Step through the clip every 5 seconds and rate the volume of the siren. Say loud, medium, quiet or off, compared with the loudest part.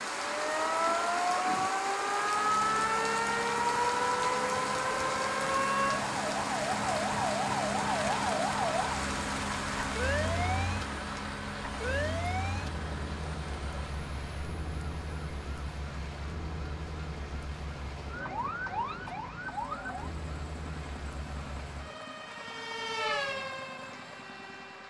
loud, loud, medium, medium, medium.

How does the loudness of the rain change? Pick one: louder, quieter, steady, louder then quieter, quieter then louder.
quieter.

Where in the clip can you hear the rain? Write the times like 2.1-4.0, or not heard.
0.0-24.8.